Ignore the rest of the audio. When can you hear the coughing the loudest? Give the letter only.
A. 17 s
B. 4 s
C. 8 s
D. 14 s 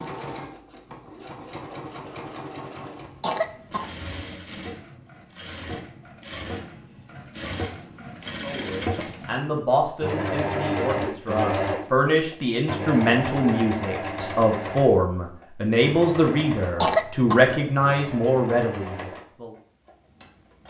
A.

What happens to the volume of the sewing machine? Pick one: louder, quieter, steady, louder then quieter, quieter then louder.
louder then quieter.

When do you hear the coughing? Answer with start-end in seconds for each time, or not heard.
3.0-4.3, 16.6-17.4.